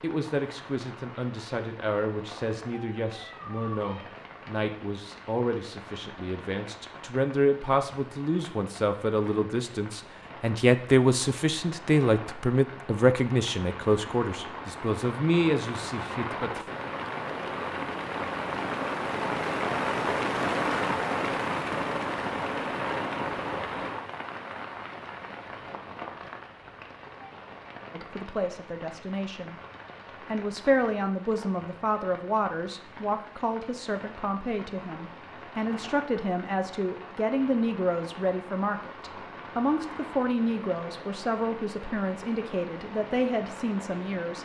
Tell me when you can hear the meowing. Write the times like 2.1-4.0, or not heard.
2.6-4.1.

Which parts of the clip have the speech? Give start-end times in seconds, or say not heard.
0.0-16.7, 27.9-29.6, 30.2-44.3.